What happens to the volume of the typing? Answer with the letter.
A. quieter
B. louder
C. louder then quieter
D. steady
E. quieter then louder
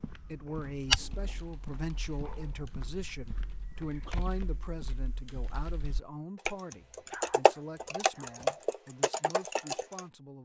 B.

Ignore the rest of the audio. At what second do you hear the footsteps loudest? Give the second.
1 s.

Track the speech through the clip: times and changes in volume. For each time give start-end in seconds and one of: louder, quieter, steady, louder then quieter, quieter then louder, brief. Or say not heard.
0.1-10.4 quieter.